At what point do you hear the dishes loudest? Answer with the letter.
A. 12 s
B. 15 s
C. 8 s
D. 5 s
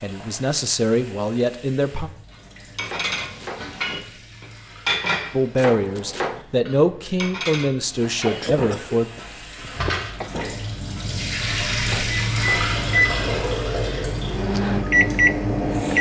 D.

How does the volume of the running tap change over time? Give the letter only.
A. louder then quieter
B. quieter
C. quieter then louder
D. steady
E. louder
E.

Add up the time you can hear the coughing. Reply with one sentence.
The coughing can be heard for 2 seconds in total.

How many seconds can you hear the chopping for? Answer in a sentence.
The chopping can be heard for 3 seconds in total.